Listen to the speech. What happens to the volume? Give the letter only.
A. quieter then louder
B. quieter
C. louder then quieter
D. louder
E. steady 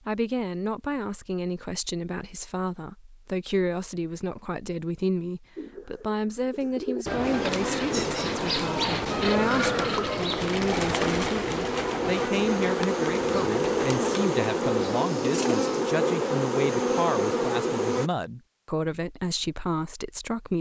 E.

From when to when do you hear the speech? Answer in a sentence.
You can hear the speech from 0.1 to 20.5 s.